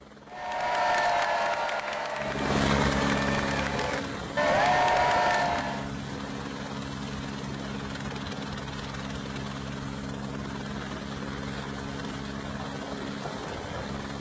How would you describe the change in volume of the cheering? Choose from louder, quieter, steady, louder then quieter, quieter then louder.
quieter then louder.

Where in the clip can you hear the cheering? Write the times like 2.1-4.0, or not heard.
0.3-5.9.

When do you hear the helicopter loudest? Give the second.
3 s.